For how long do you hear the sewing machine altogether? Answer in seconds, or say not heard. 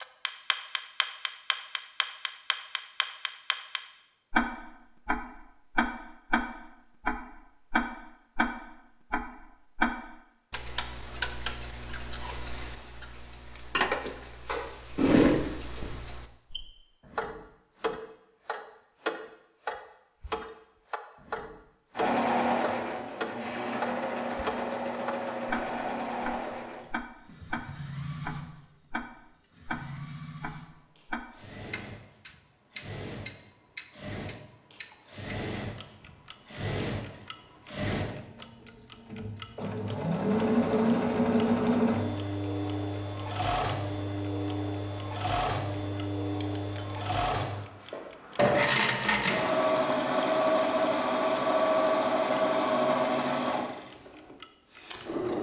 33 s.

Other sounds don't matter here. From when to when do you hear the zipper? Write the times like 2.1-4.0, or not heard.
14.4-15.8.